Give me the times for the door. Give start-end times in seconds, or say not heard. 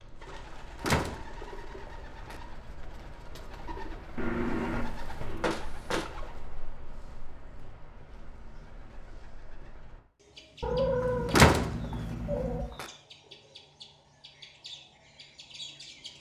0.8-2.4, 5.4-6.1, 11.3-12.8.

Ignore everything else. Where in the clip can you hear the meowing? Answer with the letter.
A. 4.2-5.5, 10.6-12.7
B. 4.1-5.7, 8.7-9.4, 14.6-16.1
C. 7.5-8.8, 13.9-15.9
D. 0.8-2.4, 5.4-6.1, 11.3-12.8
A.